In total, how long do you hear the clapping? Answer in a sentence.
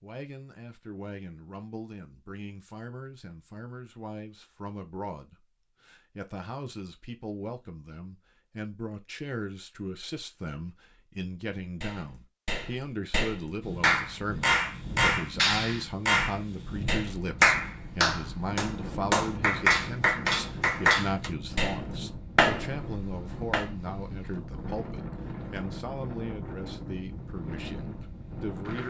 The clapping can be heard for 12 seconds in total.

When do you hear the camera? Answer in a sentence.
The camera can't be heard in this clip.